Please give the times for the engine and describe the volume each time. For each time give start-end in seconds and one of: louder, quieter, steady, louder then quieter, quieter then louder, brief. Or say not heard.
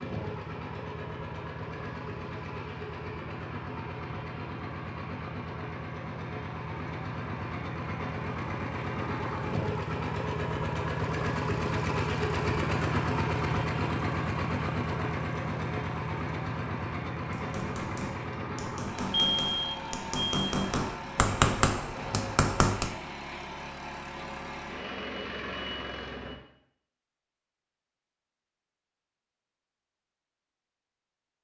0.0-26.4 louder then quieter.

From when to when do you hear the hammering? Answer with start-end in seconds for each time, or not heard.
17.3-22.9.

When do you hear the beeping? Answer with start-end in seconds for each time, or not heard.
19.1-20.4.